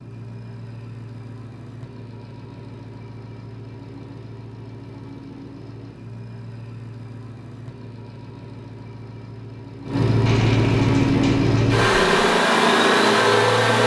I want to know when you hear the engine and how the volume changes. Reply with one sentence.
You can hear the engine from 0.0 to 13.8 s, getting louder.